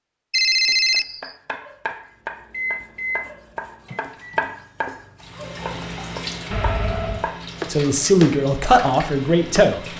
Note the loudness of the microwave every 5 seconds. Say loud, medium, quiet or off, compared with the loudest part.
loud, off.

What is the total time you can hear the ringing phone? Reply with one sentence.
The ringing phone can be heard for 2 seconds in total.